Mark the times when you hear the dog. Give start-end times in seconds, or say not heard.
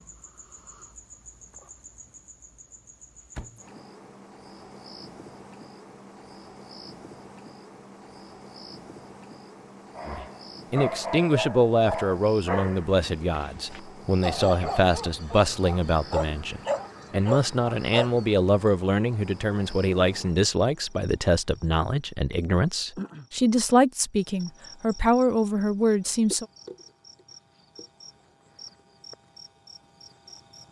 9.9-18.2.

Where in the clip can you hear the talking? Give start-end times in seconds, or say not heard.
10.1-26.4.